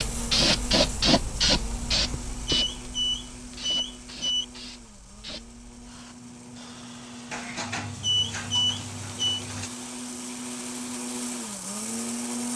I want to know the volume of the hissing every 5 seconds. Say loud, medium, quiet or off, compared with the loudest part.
loud, quiet, quiet.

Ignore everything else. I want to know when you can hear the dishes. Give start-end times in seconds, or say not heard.
7.2-9.7.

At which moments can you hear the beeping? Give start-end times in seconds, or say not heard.
2.5-4.5, 8.0-9.4.